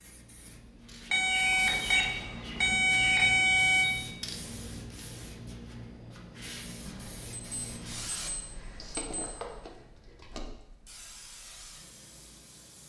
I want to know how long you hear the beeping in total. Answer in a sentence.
You can hear the beeping for 5 seconds altogether.